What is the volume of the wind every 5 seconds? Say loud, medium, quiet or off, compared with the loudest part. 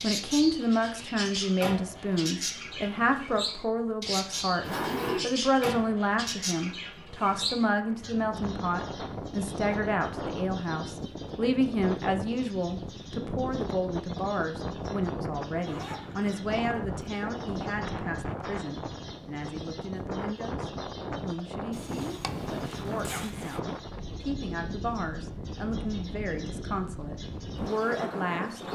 quiet, loud, loud, loud, loud, loud.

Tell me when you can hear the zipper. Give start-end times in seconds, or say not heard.
4.6-5.2, 15.6-17.1, 21.7-23.6.